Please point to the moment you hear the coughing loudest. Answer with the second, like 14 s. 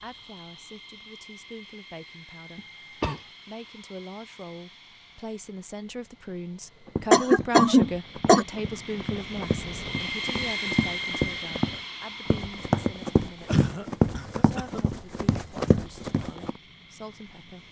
8 s.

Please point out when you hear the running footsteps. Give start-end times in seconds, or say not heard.
6.8-16.6.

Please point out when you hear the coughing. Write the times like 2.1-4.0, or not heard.
2.5-3.2, 7.1-8.4, 13.4-14.8.